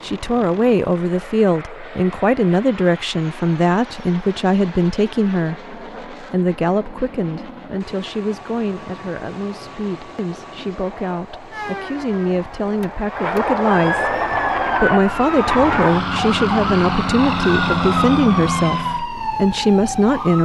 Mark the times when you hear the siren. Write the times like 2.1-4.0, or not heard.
11.5-20.3.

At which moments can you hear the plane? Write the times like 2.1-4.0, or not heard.
0.0-19.1.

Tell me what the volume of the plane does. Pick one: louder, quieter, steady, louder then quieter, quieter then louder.
louder.